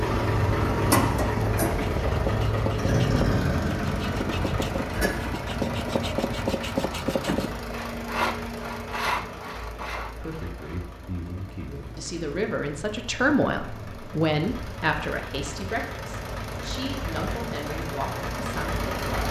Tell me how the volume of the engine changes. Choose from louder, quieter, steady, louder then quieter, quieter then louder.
quieter then louder.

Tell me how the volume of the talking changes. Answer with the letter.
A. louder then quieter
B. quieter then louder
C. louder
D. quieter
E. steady
A.